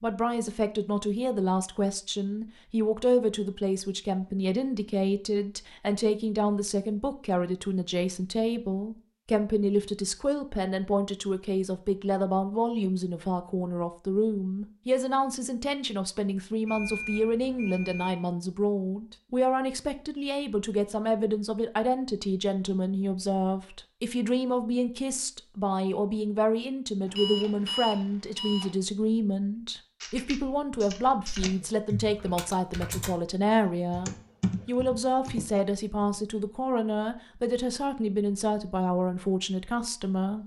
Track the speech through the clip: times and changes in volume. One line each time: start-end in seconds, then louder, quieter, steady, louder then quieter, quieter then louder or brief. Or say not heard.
0.0-40.4 steady.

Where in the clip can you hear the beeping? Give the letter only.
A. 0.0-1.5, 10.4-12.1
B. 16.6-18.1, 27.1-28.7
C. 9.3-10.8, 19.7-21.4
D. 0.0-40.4
B.